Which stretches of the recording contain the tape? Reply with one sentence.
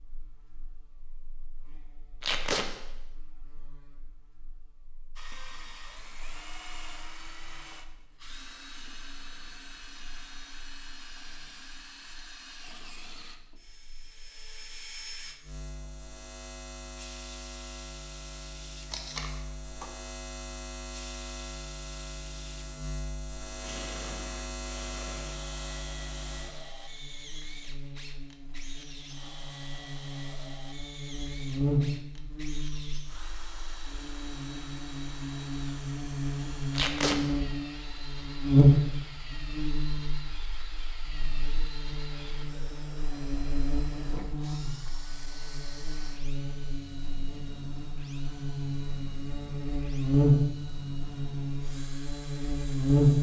You can hear the tape from 2.2 to 2.6 s, from 18.9 to 19.3 s and from 36.7 to 37.2 s.